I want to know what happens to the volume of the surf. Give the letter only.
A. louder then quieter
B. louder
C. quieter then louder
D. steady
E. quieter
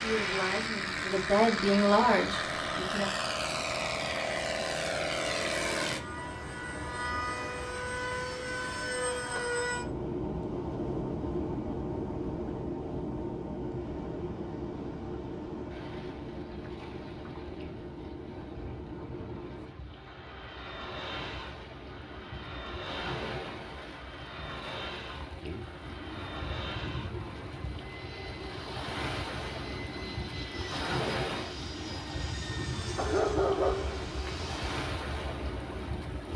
B.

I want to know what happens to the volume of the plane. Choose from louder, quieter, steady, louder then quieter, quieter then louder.
quieter.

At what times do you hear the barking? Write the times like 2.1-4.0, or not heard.
33.0-34.7.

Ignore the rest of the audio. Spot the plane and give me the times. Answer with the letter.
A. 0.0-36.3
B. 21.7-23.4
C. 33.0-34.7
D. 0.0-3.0
A.